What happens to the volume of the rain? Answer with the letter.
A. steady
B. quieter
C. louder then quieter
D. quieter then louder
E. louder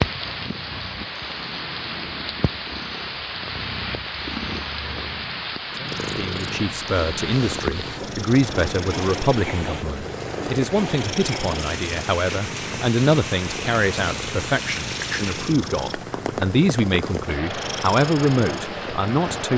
A.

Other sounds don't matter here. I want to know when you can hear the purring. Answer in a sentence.
The purring can be heard from 0.0 to 19.5 s.